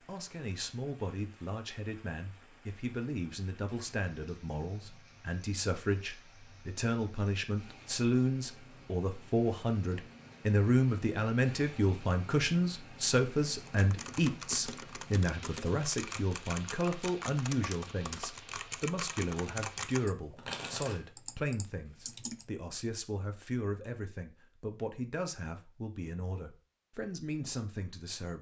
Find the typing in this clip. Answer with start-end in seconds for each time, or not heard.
13.6-22.5.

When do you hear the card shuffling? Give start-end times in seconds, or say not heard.
20.4-21.0.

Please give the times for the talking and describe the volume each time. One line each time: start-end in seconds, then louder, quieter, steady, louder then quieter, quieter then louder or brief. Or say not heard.
0.1-28.3 louder then quieter.